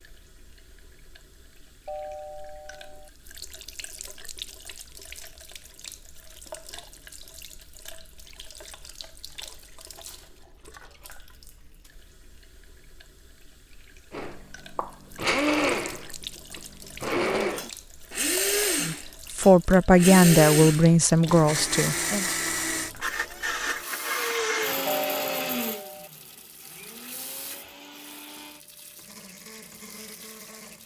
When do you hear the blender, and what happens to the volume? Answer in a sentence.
The blender can be heard from 14.1 to 30.8 s, getting quieter.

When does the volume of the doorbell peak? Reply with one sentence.
The volume of the doorbell peaks at 25 seconds.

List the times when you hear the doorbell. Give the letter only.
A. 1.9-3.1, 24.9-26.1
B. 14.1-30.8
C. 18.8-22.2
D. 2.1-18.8
A.